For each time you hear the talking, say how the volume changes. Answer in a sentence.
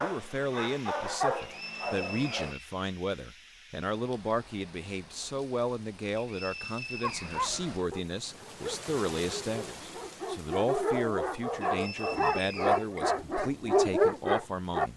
You can hear the talking from 0.0 to 14.9 s, at a steady volume.